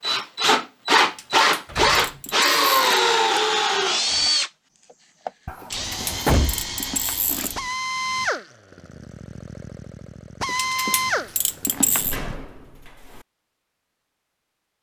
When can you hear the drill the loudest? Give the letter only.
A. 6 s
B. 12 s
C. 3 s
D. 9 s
C.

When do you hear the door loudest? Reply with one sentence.
The loudest moment of the door is at 6 seconds.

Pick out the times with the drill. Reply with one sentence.
You can hear the drill from 0.0 to 12.4 s.